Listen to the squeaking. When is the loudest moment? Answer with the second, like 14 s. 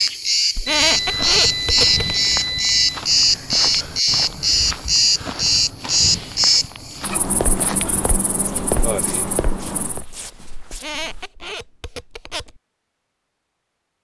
1 s.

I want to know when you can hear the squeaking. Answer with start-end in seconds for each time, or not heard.
0.6-2.0, 10.7-12.6.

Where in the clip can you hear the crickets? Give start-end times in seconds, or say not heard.
0.0-10.1.